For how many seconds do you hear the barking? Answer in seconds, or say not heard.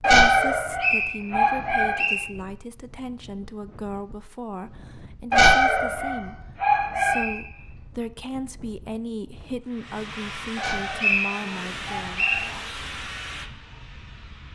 6 s.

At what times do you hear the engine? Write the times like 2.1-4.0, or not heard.
9.6-14.4.